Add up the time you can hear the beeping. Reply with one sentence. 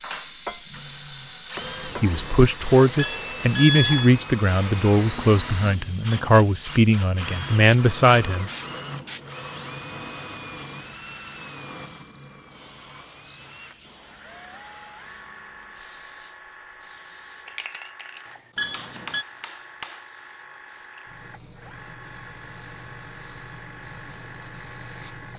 The beeping can be heard for 2 seconds in total.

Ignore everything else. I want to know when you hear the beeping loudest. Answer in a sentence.
The volume of the beeping peaks at 4 seconds.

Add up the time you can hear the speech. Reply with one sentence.
You can hear the speech for 7 seconds altogether.